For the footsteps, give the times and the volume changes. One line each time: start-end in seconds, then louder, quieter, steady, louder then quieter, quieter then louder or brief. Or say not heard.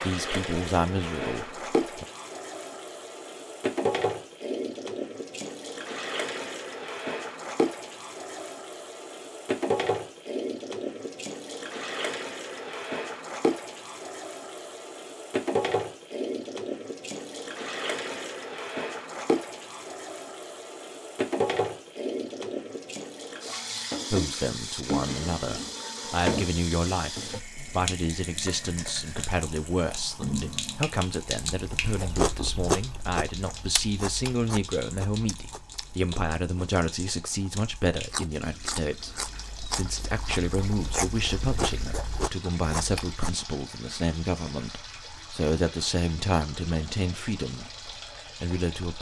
not heard.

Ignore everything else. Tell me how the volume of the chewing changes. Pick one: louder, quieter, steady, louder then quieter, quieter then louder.
quieter then louder.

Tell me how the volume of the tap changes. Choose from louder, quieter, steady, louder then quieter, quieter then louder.
quieter.